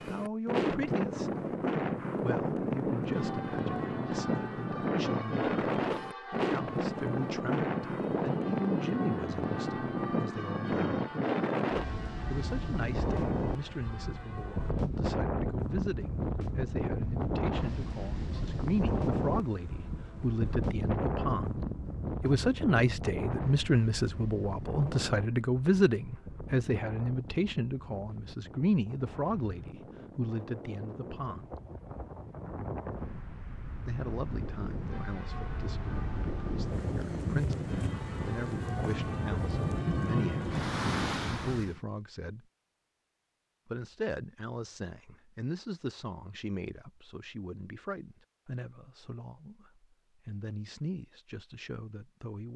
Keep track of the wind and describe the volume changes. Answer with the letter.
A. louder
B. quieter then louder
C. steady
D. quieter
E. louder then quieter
B.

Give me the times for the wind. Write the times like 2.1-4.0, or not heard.
0.0-41.8.